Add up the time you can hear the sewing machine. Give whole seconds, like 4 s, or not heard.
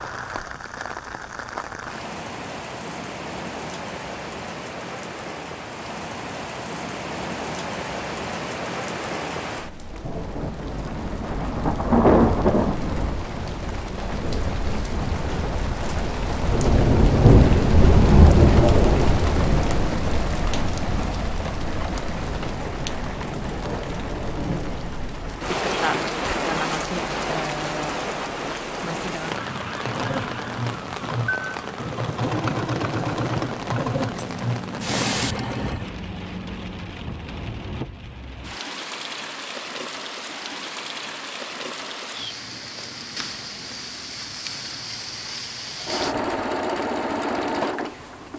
9 s.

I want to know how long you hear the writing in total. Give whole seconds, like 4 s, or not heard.
not heard.